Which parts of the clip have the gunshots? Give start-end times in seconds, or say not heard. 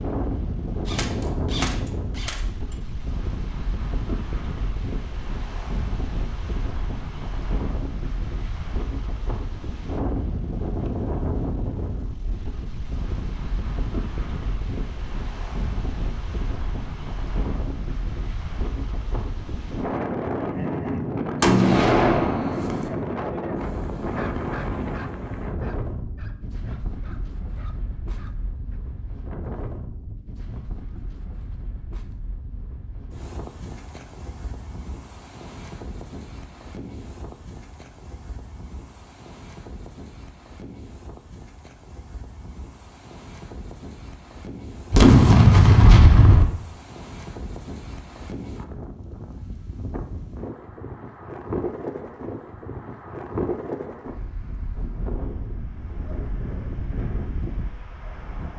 0.8-2.4, 21.4-22.9, 44.9-46.5.